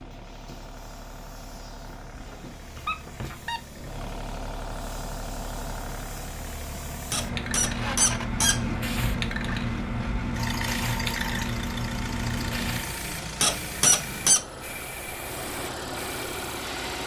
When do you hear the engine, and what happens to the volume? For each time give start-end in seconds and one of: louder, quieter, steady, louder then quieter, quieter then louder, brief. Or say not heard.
0.0-17.0 louder.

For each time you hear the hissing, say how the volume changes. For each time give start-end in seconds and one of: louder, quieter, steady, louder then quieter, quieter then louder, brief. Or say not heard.
0.0-17.0 louder then quieter.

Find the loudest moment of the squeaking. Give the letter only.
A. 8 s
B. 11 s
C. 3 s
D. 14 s
D.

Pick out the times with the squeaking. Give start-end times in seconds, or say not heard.
2.1-4.0, 7.1-8.6, 13.4-14.4.